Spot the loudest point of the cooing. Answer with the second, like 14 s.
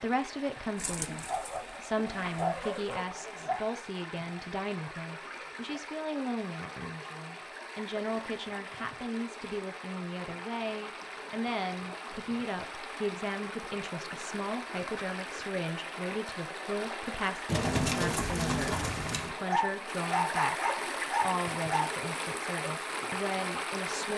18 s.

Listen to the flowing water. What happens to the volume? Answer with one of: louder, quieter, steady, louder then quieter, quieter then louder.
louder.